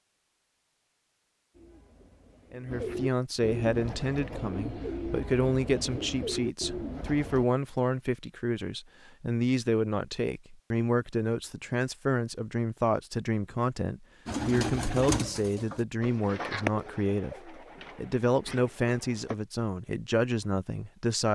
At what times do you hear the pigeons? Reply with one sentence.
The pigeons can be heard from 1.5 to 7.5 s and from 14.2 to 19.4 s.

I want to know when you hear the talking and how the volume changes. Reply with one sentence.
The talking can be heard from 2.5 to 21.2 s, at a steady volume.